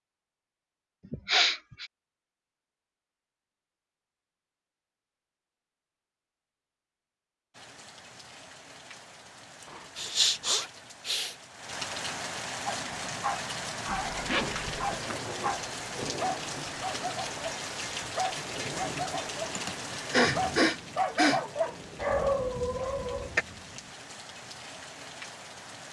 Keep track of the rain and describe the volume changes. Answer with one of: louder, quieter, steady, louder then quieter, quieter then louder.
louder then quieter.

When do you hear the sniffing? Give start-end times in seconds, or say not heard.
1.1-1.9, 9.9-11.3, 19.6-21.4.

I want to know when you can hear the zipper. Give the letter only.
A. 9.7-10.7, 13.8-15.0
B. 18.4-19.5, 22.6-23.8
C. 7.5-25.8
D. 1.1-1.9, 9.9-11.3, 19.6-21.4
A.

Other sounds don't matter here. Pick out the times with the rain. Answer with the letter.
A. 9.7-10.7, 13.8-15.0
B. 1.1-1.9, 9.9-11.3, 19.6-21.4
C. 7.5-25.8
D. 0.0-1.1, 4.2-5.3
C.